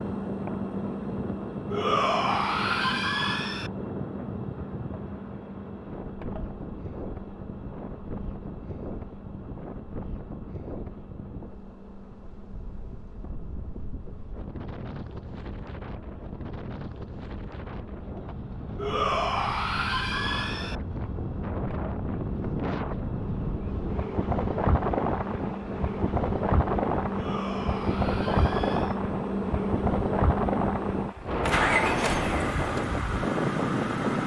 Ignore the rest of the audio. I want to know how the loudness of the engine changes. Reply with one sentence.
The volume of the engine goes down, then up.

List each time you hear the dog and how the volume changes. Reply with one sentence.
You can't hear the dog here.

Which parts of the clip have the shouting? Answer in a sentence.
You can hear the shouting from 1.7 to 3.7 s, from 18.8 to 20.8 s and from 27.1 to 28.9 s.